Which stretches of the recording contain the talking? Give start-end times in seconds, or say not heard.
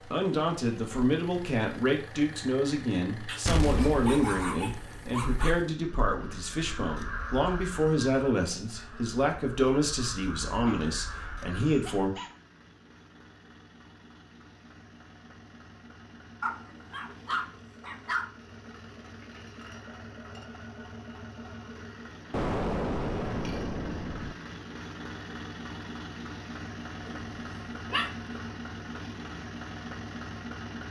0.1-12.2.